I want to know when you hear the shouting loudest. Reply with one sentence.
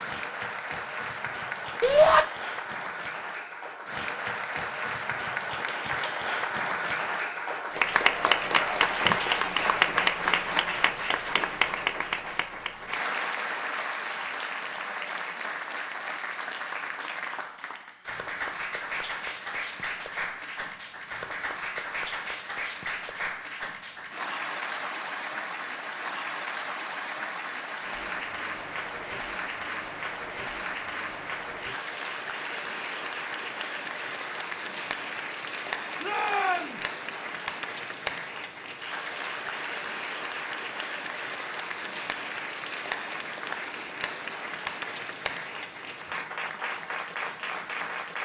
The volume of the shouting peaks at 2 seconds.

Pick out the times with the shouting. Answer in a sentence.
The shouting can be heard from 1.8 to 2.2 s and from 36.0 to 36.9 s.